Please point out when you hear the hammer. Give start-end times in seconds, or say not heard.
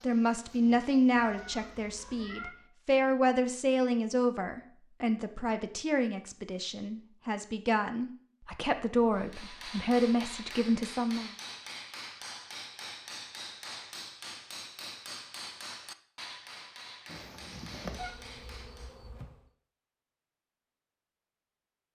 9.1-19.0.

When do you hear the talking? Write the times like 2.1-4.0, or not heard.
0.0-11.3.